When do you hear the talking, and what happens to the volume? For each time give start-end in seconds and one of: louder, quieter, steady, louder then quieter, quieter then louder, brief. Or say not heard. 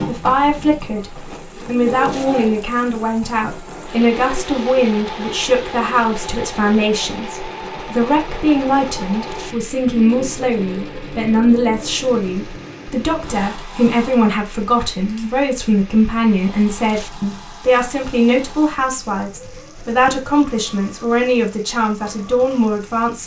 0.0-23.2 steady.